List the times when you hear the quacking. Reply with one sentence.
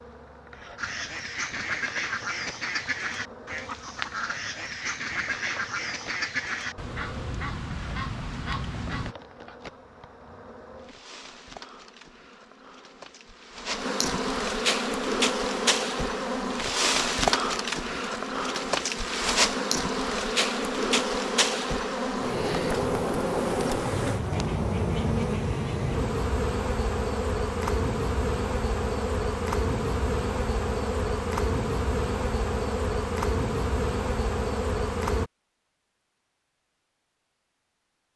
The quacking can be heard from 0.8 to 9.2 s.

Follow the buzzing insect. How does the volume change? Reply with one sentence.
The volume of the buzzing insect goes up.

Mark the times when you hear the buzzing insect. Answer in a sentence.
The buzzing insect can be heard from 0.0 to 35.3 s.